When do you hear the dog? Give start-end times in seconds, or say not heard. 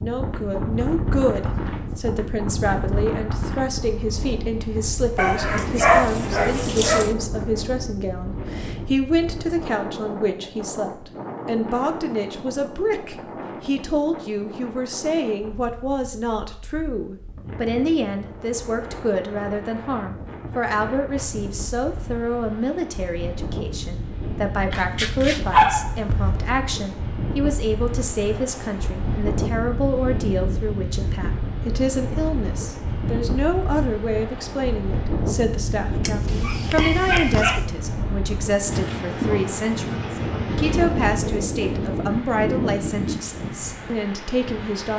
5.2-7.2, 24.7-26.4, 36.0-37.6.